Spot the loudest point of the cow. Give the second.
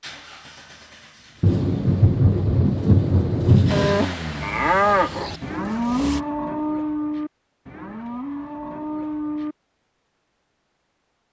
5 s.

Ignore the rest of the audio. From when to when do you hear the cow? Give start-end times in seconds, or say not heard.
3.6-9.6.